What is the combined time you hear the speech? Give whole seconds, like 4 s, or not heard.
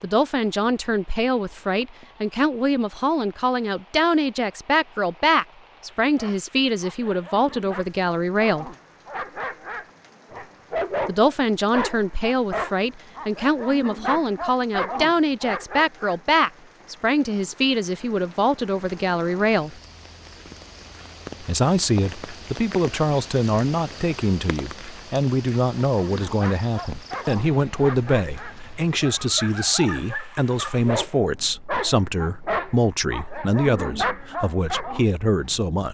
32 s.